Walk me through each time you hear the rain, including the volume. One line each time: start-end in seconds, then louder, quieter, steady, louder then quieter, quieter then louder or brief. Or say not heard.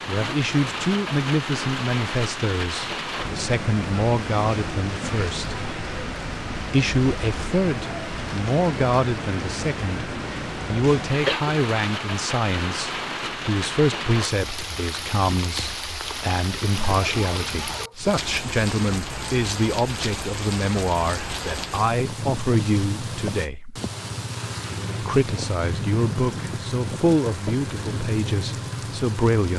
0.0-29.5 steady.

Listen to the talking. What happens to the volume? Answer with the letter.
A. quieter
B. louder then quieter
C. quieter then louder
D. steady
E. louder
D.